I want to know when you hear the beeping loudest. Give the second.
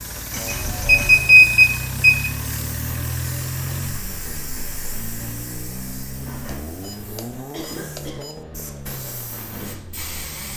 1 s.